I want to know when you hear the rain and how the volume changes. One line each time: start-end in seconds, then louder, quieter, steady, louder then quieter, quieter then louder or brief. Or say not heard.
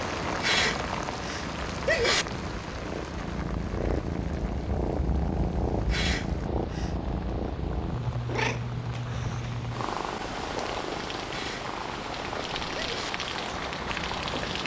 0.0-14.6 quieter then louder.